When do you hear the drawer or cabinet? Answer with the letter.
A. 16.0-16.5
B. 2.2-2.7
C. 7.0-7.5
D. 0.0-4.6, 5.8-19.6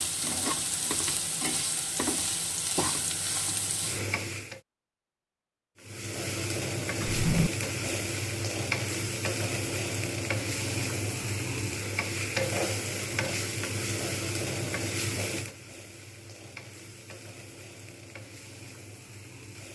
C.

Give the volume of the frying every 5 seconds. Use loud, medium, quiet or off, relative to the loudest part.
loud, loud, loud, medium.